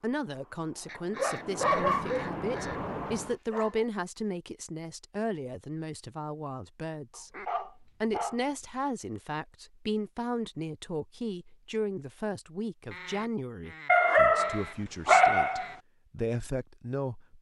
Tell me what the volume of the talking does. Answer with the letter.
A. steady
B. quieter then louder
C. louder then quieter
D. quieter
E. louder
A.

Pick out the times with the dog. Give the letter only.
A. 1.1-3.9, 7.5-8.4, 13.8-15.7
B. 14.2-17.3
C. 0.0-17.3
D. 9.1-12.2
A.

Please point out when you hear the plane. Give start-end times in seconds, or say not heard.
0.2-3.4.